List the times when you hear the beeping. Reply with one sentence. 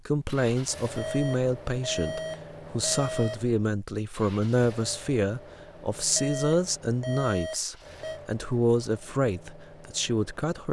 The beeping can be heard from 0.9 to 3.4 s and from 6.2 to 8.2 s.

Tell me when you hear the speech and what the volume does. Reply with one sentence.
The speech can be heard from 0.1 to 10.6 s, at a steady volume.